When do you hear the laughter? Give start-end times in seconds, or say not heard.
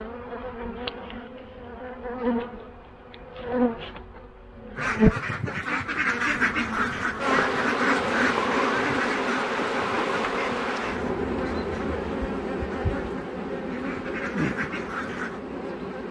not heard.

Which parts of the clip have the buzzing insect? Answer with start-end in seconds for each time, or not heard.
0.0-5.2, 6.3-16.0.